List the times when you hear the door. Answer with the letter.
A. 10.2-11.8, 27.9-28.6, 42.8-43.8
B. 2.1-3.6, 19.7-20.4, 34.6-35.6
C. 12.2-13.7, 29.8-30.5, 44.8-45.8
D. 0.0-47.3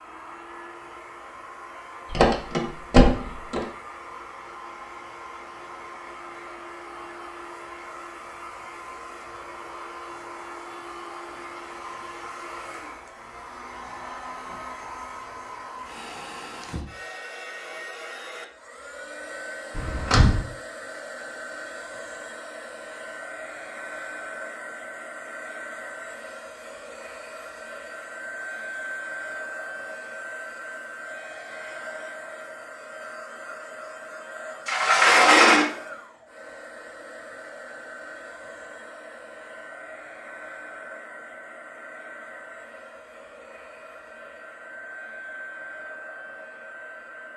B.